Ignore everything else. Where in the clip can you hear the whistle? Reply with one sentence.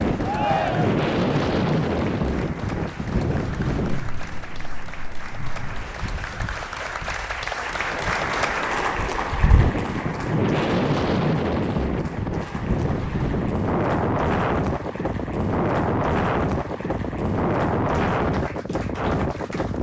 You can't hear the whistle here.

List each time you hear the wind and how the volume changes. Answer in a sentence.
You can hear the wind from 0.0 to 19.7 s, getting quieter then louder.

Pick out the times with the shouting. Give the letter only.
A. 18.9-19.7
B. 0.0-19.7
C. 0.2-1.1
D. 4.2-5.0
C.